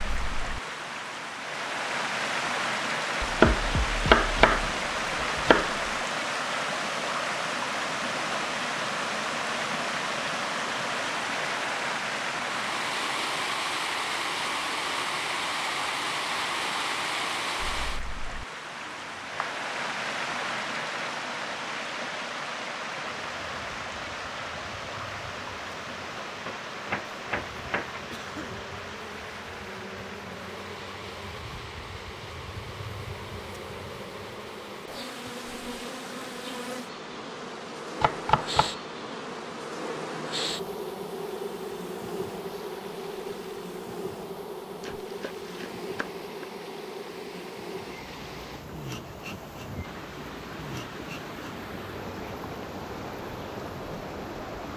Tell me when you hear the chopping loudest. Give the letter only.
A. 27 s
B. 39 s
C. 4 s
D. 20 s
C.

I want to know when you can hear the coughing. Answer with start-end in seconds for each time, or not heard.
28.1-28.6.